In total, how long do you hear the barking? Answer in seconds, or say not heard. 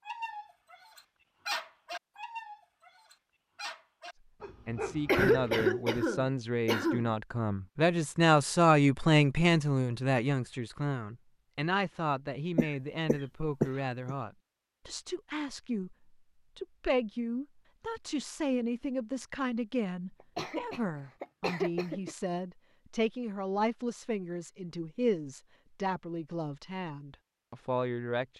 5 s.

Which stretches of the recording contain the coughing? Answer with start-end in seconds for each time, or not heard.
5.0-7.1, 12.6-14.2, 20.4-22.1.